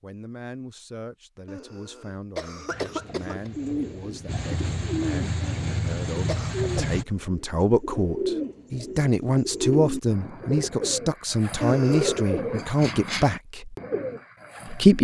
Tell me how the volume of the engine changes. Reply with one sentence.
The volume of the engine goes up.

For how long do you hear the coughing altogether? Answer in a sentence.
You can hear the coughing for 4 seconds altogether.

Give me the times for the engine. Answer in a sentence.
You can hear the engine from 2.6 to 7.0 s.